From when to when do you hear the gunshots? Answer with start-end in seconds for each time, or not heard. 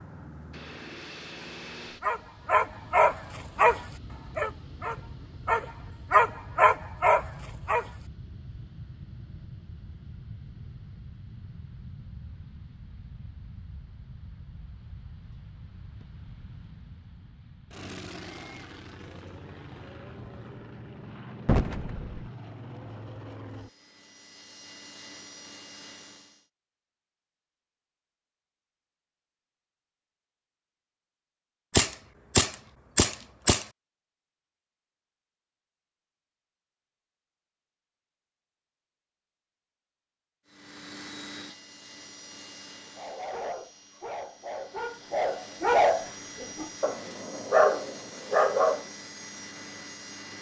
21.4-22.2, 31.7-33.6.